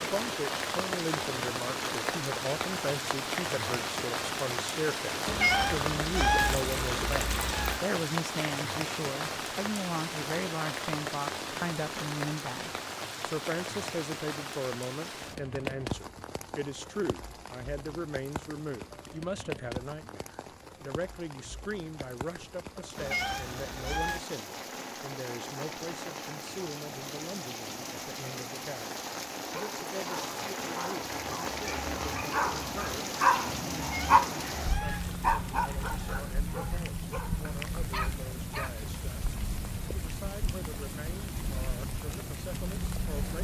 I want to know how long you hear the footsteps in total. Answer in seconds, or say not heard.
not heard.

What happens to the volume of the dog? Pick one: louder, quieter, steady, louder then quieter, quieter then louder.
louder then quieter.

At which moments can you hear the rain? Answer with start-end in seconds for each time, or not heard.
0.0-43.3.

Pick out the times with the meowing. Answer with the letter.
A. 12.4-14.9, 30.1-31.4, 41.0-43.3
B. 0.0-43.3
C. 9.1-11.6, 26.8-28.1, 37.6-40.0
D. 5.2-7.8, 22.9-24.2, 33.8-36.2
D.